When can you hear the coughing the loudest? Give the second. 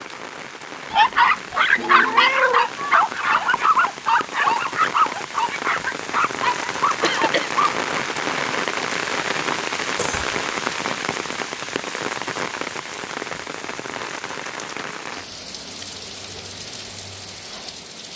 7 s.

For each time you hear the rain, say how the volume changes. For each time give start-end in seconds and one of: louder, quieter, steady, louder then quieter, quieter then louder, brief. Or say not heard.
0.0-18.1 louder then quieter.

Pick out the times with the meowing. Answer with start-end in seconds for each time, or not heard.
1.8-2.6.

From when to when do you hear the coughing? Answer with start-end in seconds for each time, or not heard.
7.0-7.6, 9.9-10.3.